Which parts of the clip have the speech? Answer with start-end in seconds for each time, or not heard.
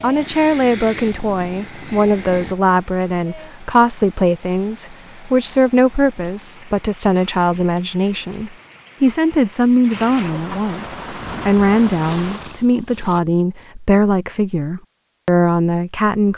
0.0-16.3.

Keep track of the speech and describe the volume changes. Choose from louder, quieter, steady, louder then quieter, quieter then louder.
steady.